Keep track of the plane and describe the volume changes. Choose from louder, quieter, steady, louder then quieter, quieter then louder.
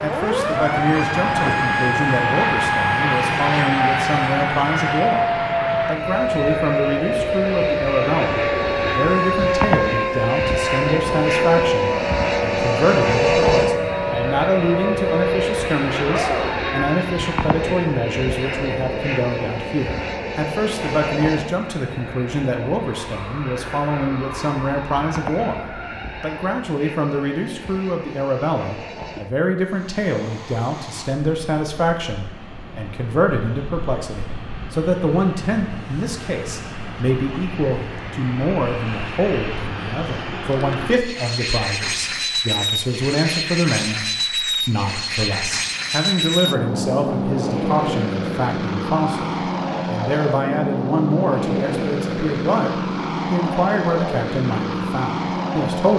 quieter then louder.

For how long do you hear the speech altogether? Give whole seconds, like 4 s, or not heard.
56 s.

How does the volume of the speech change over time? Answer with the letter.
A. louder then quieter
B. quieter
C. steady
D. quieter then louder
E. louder
C.